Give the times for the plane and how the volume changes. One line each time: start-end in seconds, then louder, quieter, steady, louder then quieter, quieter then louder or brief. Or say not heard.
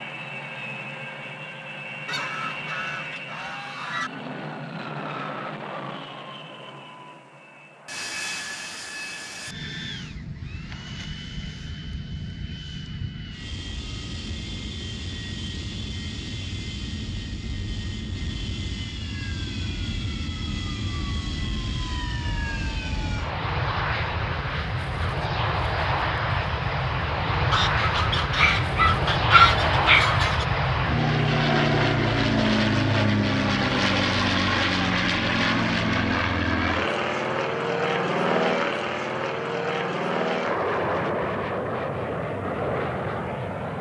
0.0-43.7 louder.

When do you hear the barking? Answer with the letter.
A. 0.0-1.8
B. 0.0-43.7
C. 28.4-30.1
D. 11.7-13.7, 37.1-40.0
C.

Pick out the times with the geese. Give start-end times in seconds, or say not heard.
2.0-4.1, 27.5-30.4.